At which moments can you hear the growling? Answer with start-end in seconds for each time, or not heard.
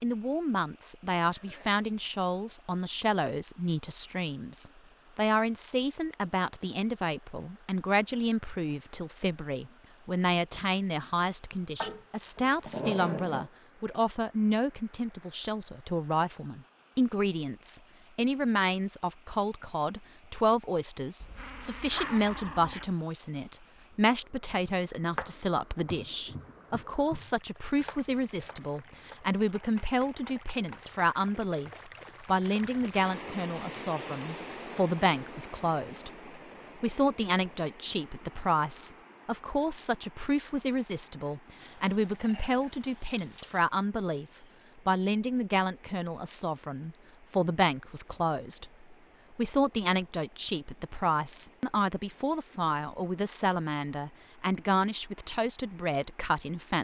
11.8-13.5, 21.2-22.9, 41.6-43.6.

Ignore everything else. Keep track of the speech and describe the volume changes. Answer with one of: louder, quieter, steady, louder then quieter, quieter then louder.
steady.